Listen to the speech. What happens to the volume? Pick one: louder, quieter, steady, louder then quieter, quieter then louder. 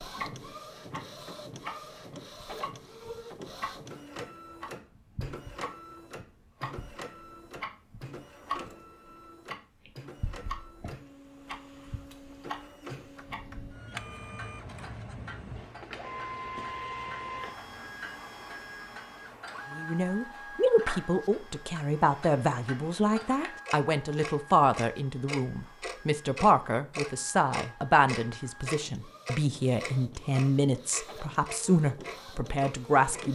steady.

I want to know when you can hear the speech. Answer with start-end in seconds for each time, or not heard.
19.7-33.3.